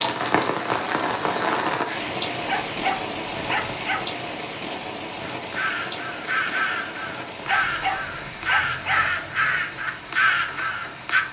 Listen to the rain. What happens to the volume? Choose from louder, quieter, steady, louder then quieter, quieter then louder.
quieter.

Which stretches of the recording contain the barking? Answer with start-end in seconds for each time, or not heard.
2.5-4.0, 7.5-9.1.